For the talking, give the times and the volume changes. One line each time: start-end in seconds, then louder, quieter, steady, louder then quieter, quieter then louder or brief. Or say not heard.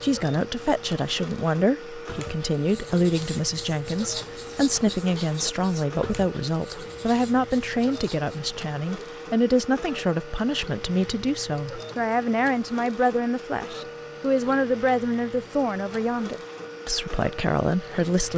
0.0-18.3 steady.